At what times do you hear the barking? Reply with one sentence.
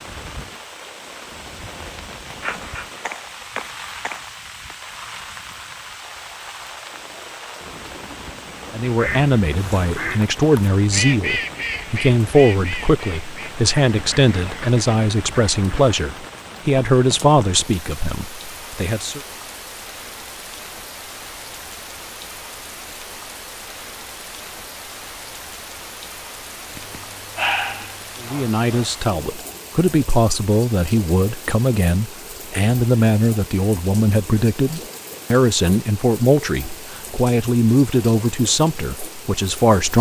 You can hear the barking from 2.4 to 4.8 s and from 26.8 to 28.9 s.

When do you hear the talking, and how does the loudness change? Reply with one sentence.
The talking can be heard from 8.7 to 19.2 s, at a steady volume; and from 28.2 to 39.9 s, at a steady volume.